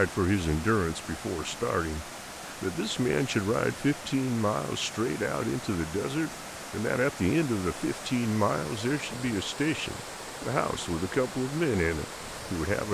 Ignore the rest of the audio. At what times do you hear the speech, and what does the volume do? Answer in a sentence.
You can hear the speech from 0.0 to 12.8 s, at a steady volume.